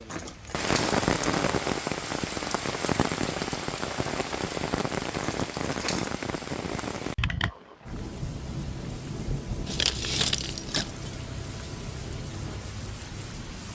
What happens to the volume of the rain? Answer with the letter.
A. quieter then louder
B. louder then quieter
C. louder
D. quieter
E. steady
D.